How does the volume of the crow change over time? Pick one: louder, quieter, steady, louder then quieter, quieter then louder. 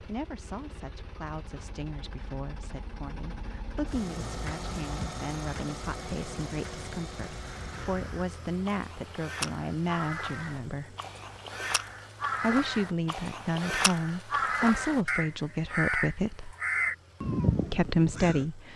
louder.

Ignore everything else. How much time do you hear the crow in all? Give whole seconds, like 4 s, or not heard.
11 s.